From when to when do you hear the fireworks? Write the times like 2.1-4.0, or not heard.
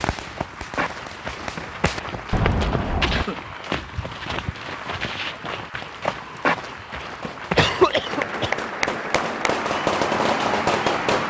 0.0-3.2, 7.1-11.2.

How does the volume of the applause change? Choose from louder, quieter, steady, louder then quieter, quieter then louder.
louder.